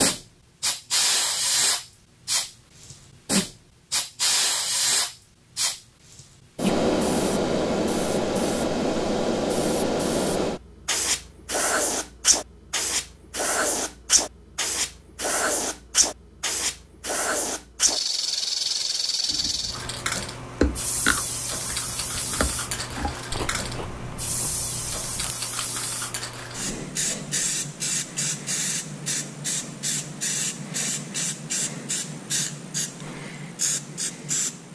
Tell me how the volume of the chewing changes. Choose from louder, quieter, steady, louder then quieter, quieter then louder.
quieter.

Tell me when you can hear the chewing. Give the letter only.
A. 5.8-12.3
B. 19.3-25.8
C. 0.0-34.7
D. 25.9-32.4
B.